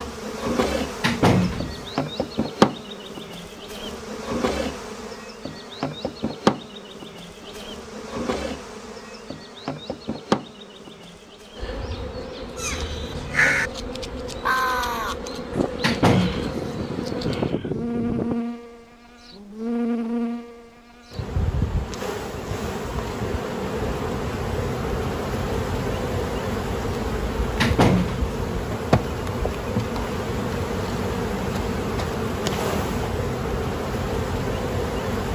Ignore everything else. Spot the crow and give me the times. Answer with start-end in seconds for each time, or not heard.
12.6-18.4.